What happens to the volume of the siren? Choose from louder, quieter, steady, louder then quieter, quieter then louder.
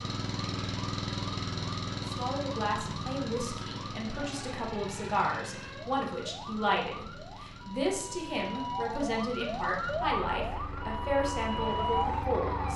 louder.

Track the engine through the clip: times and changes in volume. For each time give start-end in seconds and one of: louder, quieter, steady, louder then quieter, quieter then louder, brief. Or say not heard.
0.0-12.7 quieter then louder.